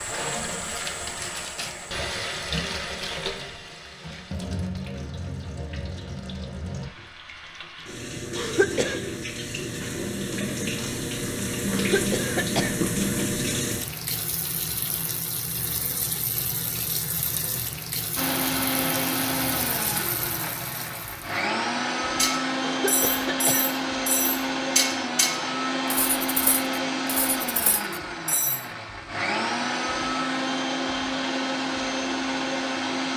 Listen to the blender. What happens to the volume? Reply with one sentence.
The volume of the blender stays about the same.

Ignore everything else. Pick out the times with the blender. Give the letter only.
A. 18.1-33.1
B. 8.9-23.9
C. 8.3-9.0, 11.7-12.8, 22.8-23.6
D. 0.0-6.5
A.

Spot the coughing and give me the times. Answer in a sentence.
You can hear the coughing from 8.3 to 9.0 s, from 11.7 to 12.8 s and from 22.8 to 23.6 s.